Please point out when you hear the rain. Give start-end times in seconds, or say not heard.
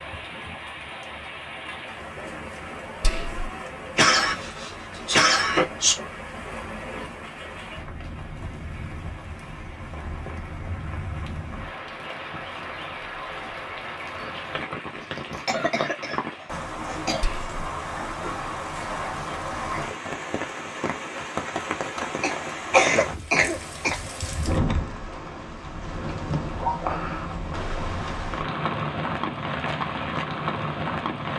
0.0-31.3.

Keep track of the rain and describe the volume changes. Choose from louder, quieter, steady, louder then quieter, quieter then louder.
louder.